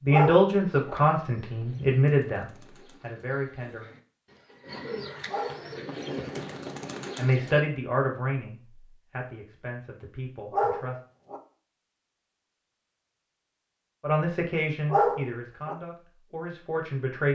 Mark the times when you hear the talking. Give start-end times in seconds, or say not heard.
0.0-3.9, 7.2-10.9, 14.0-17.3.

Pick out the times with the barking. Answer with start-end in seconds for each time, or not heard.
0.1-0.9, 5.2-6.2, 10.5-11.4, 14.8-15.8.